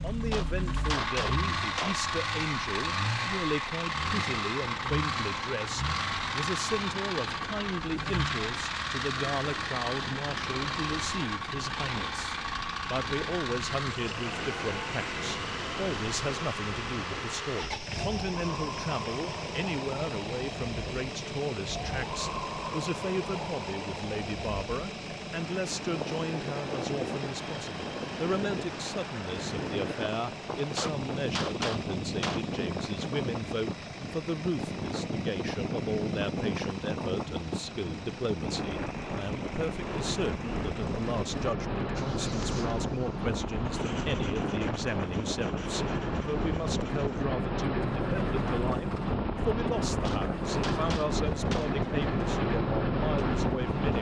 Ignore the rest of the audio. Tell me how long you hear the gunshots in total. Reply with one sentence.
You can hear the gunshots for 5 seconds altogether.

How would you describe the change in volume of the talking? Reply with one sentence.
The volume of the talking stays about the same.